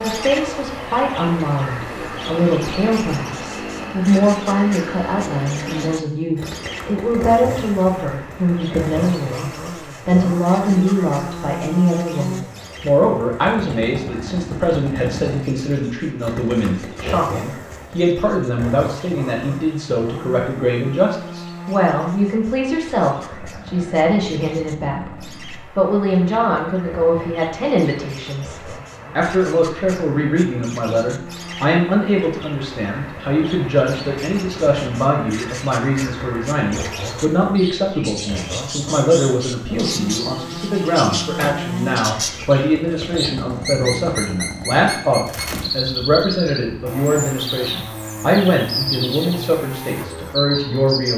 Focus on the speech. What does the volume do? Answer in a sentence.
The loudness of the speech stays about the same.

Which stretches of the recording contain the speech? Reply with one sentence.
You can hear the speech from 0.0 to 51.1 s.